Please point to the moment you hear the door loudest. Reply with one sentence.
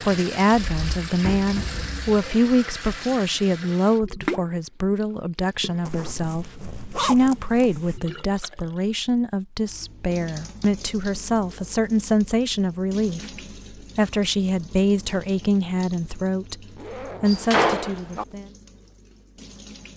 The volume of the door peaks at 18 seconds.